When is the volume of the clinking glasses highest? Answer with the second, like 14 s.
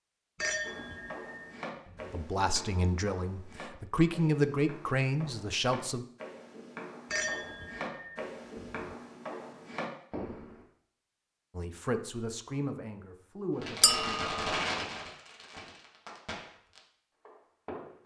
14 s.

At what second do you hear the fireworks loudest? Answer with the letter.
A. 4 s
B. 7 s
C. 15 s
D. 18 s
C.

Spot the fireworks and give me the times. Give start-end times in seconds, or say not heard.
13.6-18.0.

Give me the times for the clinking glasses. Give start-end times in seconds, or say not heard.
0.3-2.2, 7.1-8.8, 13.8-14.4.